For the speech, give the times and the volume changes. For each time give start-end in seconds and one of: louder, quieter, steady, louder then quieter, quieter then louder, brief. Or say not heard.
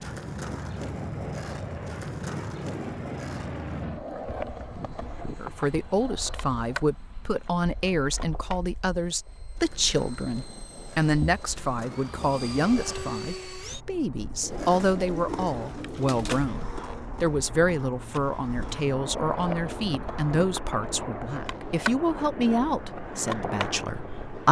5.3-24.4 steady.